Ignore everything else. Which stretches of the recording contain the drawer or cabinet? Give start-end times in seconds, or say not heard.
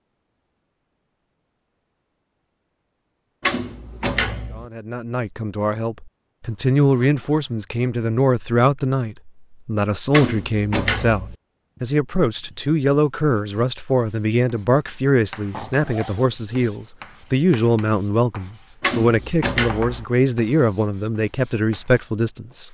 3.4-4.7, 10.1-11.3, 18.8-20.0.